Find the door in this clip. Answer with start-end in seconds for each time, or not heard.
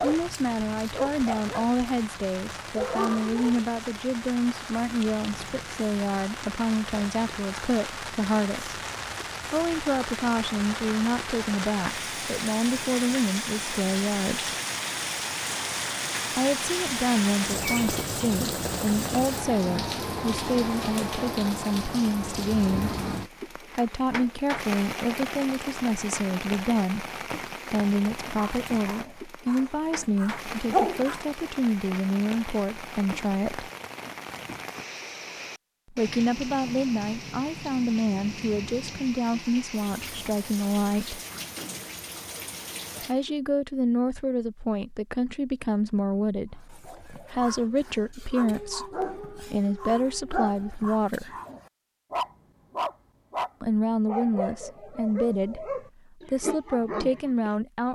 41.3-42.0.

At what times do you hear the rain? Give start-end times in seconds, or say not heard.
0.0-43.4.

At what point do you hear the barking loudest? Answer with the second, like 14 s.
31 s.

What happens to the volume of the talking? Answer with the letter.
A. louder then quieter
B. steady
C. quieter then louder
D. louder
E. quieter
B.